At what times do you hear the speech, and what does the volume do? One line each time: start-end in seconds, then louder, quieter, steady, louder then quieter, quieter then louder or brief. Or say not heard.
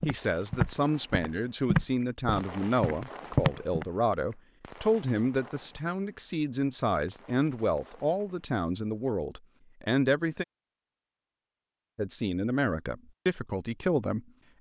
0.1-10.4 steady
11.9-14.5 brief.